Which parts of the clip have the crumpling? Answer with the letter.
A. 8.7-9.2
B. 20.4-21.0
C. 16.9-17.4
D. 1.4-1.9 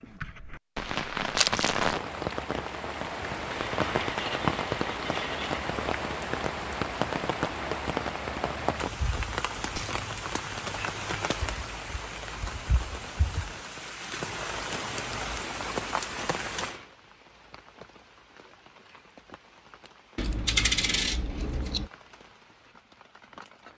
D.